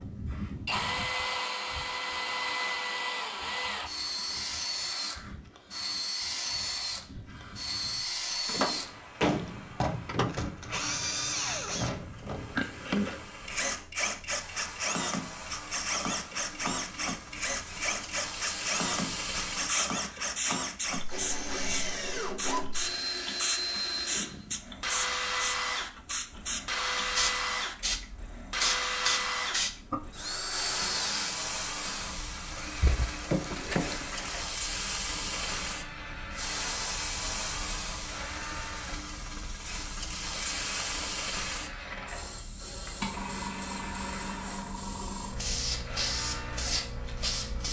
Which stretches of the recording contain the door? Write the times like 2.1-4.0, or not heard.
8.4-10.3, 32.8-34.0.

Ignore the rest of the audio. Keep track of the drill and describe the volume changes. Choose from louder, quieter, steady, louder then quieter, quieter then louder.
quieter.